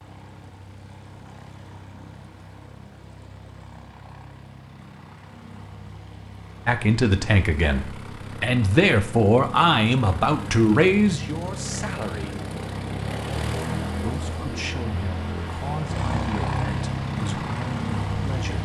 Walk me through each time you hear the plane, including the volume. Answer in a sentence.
You can hear the plane from 0.0 to 18.5 s, getting louder.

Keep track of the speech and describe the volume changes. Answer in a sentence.
The loudness of the speech goes down.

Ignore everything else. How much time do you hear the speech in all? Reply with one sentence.
You can hear the speech for 10 seconds altogether.